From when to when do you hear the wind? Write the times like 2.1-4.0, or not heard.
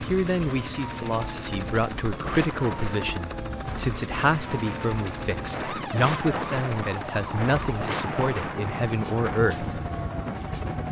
2.1-10.8.